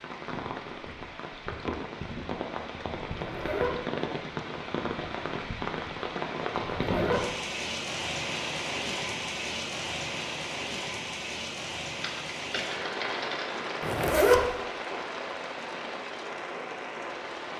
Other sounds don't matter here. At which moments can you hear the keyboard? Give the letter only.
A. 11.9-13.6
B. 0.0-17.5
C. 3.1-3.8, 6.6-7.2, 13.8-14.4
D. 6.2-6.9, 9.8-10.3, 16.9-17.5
A.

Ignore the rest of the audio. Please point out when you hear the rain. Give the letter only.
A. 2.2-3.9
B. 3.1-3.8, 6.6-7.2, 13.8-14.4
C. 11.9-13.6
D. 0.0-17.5
D.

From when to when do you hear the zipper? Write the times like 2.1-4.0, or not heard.
3.1-3.8, 6.6-7.2, 13.8-14.4.